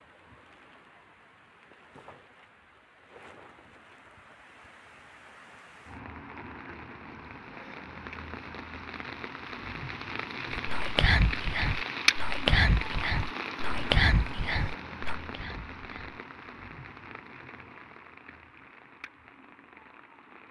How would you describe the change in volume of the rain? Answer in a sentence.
The loudness of the rain goes up, then down.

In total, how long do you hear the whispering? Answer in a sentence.
The whispering can be heard for 6 seconds in total.